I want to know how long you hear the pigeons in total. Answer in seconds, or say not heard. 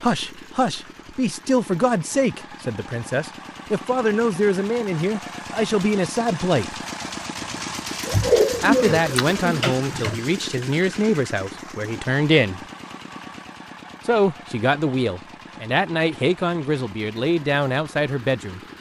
2 s.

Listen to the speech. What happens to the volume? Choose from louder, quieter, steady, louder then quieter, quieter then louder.
steady.